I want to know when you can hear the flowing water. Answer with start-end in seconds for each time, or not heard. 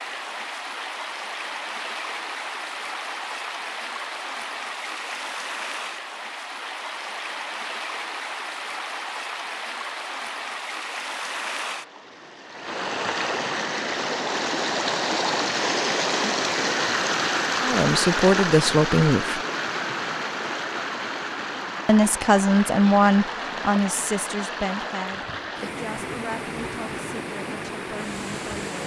0.0-28.8.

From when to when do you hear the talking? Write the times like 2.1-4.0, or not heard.
17.6-19.4, 21.9-28.8.